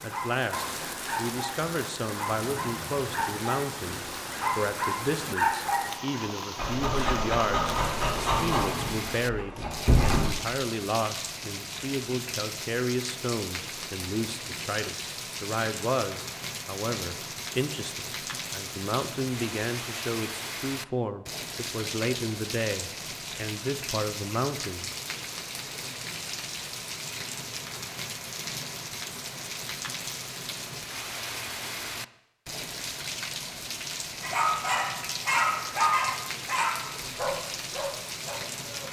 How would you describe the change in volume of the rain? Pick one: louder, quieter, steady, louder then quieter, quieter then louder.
steady.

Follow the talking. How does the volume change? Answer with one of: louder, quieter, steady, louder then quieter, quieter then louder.
steady.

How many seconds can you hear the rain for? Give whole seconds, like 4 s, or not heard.
39 s.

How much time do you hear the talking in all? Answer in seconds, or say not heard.
25 s.